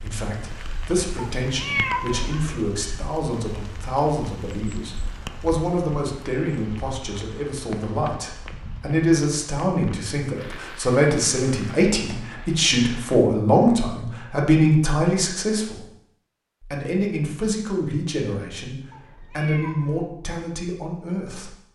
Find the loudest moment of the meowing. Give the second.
2 s.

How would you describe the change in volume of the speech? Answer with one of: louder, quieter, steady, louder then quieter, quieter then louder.
louder then quieter.